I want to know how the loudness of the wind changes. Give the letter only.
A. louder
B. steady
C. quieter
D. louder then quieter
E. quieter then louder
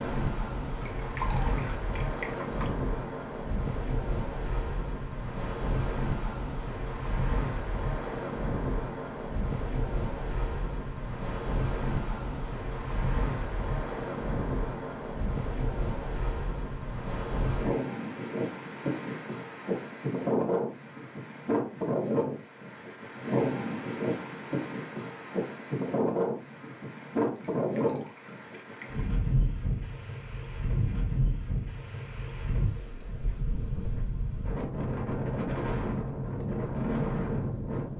B.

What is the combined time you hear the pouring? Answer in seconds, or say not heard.
4 s.